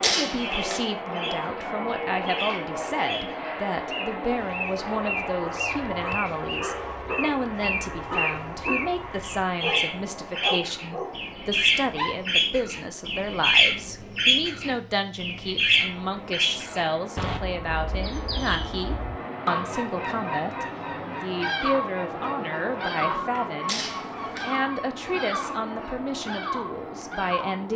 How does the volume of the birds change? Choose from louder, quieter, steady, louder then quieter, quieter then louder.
louder then quieter.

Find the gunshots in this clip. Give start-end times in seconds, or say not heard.
0.0-0.8, 23.6-24.5.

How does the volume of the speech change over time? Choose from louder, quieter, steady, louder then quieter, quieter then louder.
steady.